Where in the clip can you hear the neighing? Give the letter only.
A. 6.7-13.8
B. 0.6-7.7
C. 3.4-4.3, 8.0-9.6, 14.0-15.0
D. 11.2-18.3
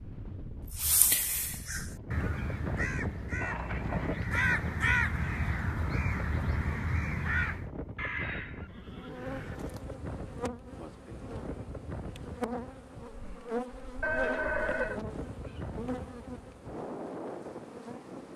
C.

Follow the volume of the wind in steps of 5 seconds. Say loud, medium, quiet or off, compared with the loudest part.
loud, loud, medium, loud.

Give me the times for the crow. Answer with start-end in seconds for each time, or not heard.
0.6-7.7.